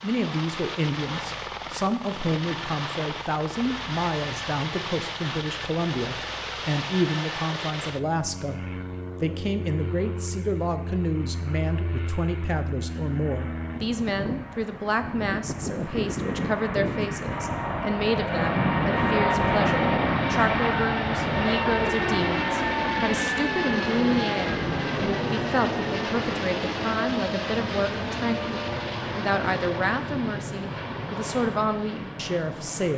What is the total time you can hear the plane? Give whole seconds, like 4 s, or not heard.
33 s.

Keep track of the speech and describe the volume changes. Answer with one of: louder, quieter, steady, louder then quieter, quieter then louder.
steady.